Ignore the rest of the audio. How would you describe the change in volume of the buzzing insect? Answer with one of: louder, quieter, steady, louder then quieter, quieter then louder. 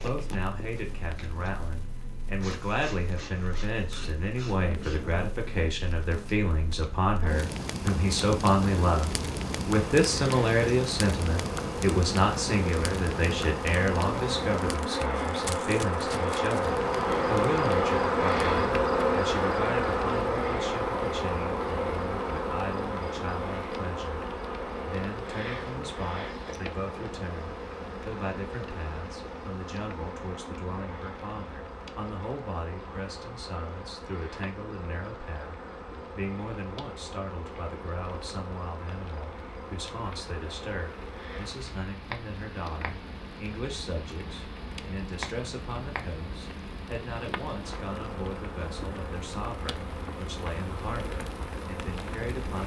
louder then quieter.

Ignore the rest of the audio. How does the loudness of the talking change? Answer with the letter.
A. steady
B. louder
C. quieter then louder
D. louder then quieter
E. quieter
E.